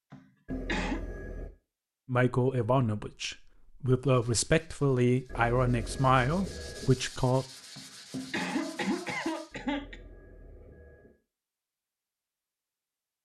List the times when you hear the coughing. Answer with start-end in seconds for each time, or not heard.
0.1-1.0, 7.8-9.9.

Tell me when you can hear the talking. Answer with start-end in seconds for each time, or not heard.
2.0-7.5.